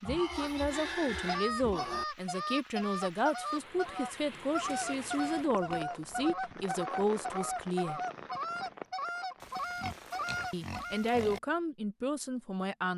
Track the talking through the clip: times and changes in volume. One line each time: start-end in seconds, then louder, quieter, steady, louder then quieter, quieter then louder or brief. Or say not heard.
0.0-8.0 steady
10.5-12.9 brief.